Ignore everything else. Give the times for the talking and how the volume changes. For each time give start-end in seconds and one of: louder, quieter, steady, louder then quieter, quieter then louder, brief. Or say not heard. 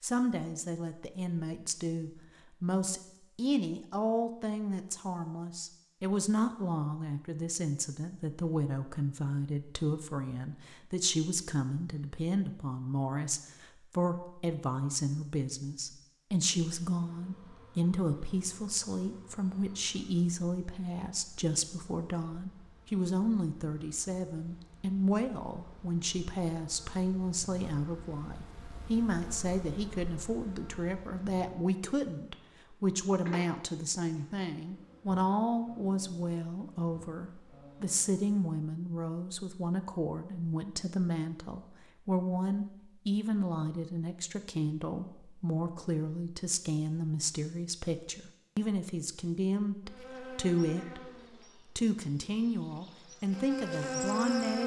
0.0-51.1 steady
51.8-54.6 brief.